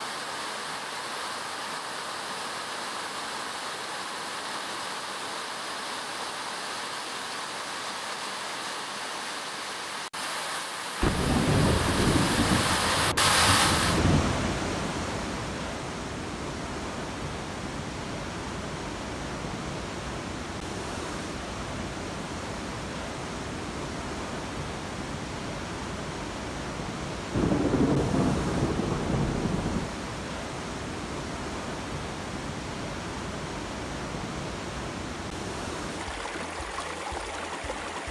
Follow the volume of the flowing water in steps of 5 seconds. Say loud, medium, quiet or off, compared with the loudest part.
medium, medium, loud, medium, medium, medium, medium, medium.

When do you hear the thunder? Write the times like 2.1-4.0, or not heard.
11.0-14.3, 27.3-29.9.